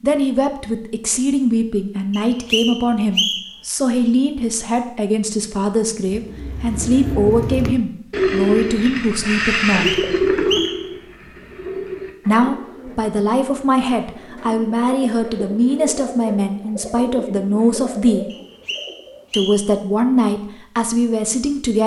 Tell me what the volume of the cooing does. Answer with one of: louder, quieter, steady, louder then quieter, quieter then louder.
quieter.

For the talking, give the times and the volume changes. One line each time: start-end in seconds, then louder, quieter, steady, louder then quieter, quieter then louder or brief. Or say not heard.
0.0-9.9 steady
12.2-18.2 steady
19.3-21.8 brief.